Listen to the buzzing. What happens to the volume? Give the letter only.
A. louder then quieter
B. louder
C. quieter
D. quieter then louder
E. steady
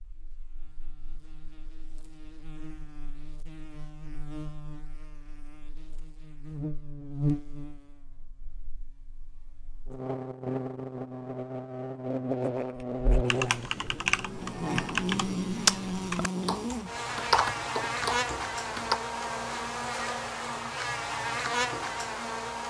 B.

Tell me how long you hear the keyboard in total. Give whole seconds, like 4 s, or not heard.
6 s.